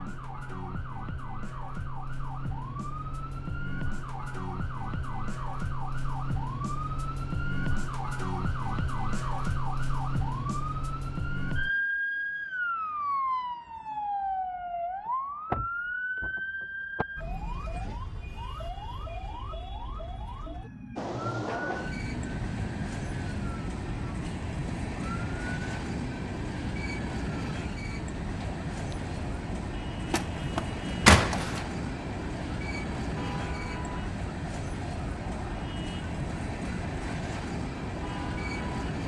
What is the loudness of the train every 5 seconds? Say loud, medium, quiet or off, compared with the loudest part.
off, off, off, off, loud, loud, loud, loud.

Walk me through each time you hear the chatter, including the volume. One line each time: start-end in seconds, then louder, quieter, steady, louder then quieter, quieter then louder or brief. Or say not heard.
not heard.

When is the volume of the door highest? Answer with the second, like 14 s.
31 s.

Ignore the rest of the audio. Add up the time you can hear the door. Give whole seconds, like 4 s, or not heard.
3 s.